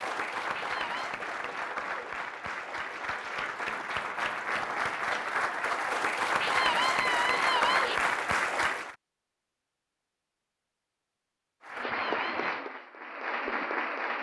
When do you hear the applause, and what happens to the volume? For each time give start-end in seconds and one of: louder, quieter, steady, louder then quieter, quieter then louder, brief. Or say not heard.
0.0-8.9 louder
11.6-14.1 brief.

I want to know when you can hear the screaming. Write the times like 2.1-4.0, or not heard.
0.5-1.1, 6.4-8.0, 11.8-12.4.